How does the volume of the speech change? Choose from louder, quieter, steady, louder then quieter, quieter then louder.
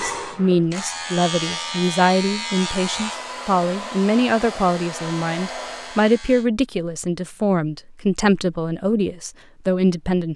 steady.